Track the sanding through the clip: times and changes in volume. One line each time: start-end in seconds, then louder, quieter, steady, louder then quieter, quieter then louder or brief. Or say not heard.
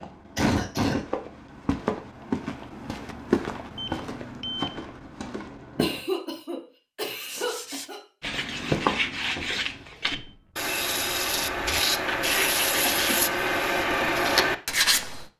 7.2-15.2 louder.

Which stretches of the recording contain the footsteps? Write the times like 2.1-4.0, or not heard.
0.0-6.0, 8.2-10.3.